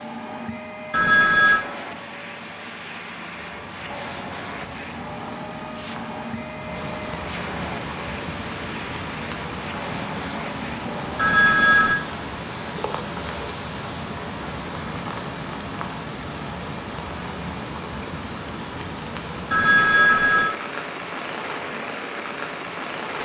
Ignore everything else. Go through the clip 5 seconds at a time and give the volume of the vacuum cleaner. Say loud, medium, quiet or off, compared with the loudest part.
loud, loud, loud, off, off.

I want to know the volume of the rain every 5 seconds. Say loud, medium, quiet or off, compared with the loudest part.
medium, loud, loud, loud, loud.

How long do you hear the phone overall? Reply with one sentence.
The phone can be heard for 3 seconds in total.